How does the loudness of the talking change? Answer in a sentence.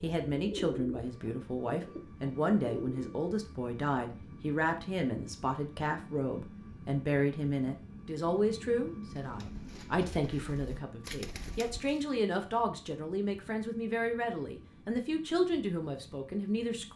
The volume of the talking stays about the same.